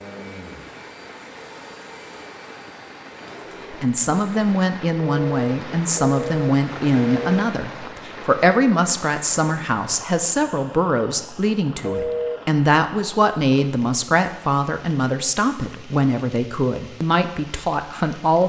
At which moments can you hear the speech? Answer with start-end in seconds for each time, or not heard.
3.7-18.4.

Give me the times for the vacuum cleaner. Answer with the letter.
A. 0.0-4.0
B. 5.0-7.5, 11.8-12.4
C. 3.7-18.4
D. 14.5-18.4
A.